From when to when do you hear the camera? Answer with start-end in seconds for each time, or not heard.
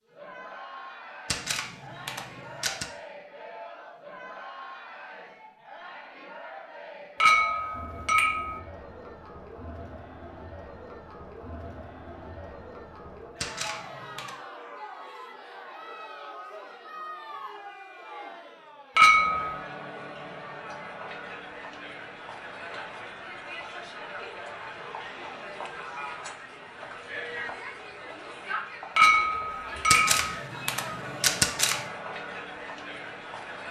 1.2-2.9, 13.4-14.3, 29.9-31.9.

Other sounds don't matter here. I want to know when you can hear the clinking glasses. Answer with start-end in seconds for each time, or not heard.
7.2-8.6, 18.9-19.6, 28.9-30.2.